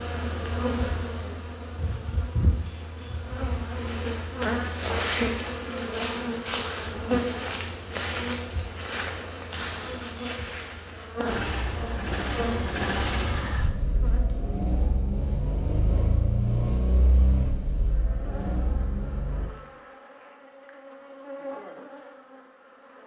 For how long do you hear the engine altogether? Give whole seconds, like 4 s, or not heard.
8 s.